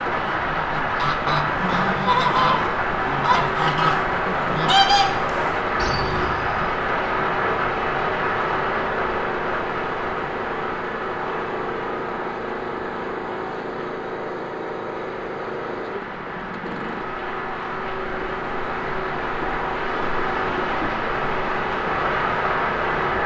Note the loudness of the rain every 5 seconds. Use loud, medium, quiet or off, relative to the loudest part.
loud, loud, medium, medium, loud.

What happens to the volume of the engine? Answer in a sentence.
The loudness of the engine stays about the same.